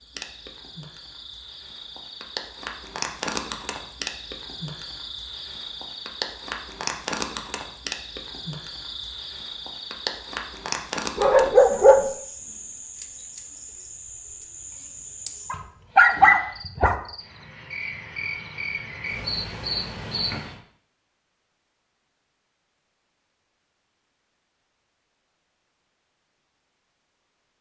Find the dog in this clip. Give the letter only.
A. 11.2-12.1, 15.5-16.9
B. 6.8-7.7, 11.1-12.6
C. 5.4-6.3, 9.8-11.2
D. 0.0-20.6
A.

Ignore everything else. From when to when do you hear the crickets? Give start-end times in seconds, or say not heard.
0.0-20.6.